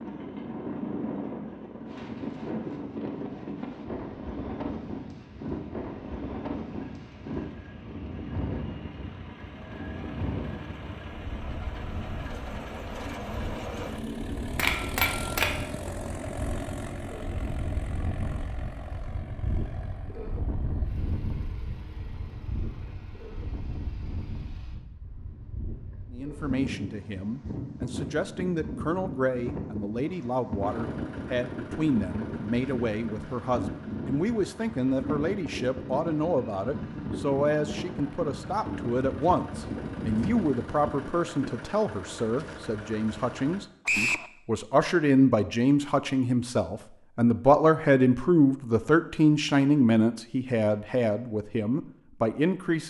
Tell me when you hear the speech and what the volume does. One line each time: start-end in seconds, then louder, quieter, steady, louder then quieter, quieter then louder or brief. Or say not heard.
26.1-52.8 louder.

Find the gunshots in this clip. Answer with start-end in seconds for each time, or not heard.
14.6-15.9.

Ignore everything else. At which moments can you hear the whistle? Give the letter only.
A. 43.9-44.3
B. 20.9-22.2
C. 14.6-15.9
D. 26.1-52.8
A.